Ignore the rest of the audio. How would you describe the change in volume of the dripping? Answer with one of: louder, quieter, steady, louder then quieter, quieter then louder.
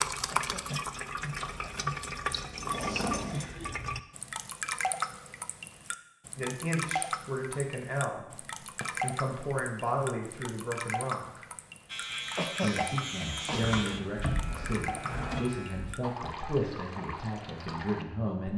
quieter.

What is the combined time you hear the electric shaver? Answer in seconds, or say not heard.
4 s.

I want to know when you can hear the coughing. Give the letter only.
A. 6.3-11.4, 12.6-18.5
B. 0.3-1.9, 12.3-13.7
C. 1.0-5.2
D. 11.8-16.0
B.